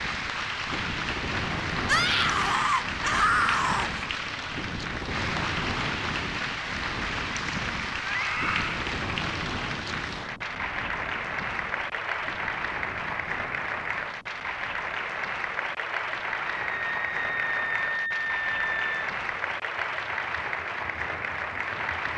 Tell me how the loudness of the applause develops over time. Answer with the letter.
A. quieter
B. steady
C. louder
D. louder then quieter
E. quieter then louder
B.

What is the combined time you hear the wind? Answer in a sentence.
You can hear the wind for 22 seconds altogether.